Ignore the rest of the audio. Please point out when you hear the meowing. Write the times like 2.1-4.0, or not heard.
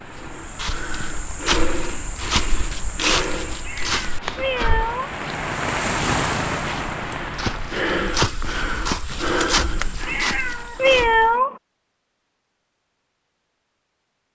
3.6-5.2, 10.1-11.6.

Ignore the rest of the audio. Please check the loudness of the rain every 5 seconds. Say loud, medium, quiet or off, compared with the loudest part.
quiet, loud, off.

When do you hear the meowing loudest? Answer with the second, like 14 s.
11 s.